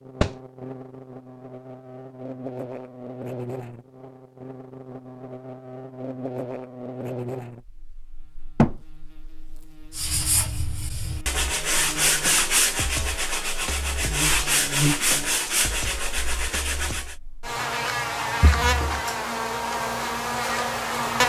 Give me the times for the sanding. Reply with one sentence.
The sanding can be heard from 9.9 to 17.1 s.